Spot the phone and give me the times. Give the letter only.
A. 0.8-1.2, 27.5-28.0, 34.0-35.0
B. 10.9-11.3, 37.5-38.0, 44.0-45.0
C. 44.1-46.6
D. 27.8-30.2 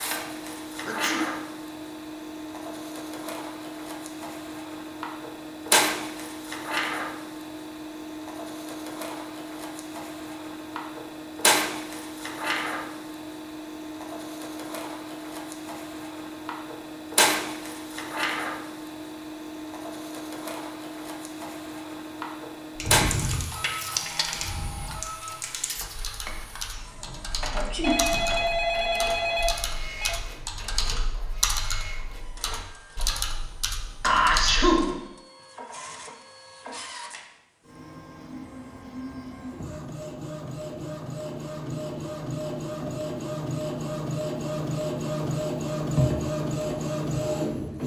D.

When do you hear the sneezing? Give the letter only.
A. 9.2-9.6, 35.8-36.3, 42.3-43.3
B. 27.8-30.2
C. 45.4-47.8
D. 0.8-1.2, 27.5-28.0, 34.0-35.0
D.